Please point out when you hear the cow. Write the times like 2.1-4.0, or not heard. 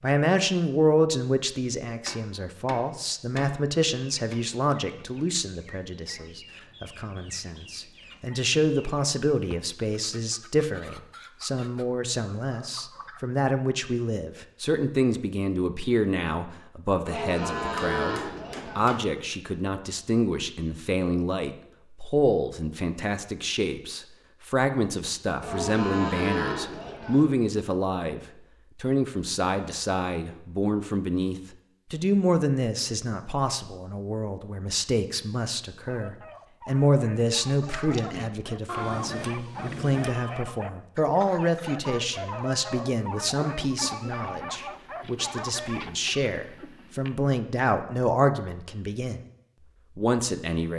17.1-18.9, 25.4-27.2.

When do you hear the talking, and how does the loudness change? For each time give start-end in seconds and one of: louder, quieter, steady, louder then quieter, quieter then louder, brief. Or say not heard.
0.0-49.2 steady
50.0-50.7 brief.